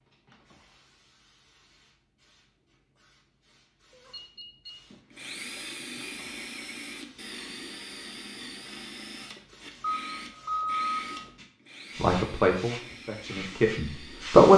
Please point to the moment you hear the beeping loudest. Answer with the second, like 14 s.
11 s.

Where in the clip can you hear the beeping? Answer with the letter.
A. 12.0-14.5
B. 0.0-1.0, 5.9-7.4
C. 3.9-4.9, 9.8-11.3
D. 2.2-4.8
C.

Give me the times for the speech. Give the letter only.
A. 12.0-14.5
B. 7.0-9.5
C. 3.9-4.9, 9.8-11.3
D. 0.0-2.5
A.